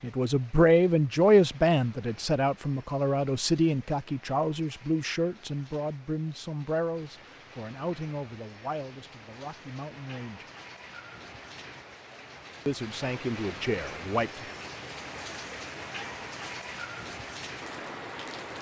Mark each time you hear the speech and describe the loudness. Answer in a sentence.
The speech can be heard from 0.0 to 10.4 s, getting quieter; and briefly from 12.7 to 14.4 s.